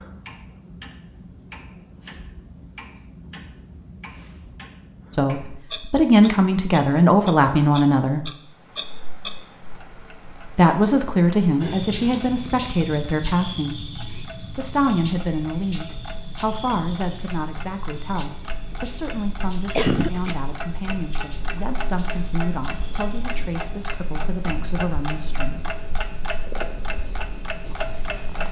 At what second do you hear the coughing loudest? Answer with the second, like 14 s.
20 s.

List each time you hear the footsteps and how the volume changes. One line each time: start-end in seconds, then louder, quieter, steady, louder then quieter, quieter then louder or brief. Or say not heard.
not heard.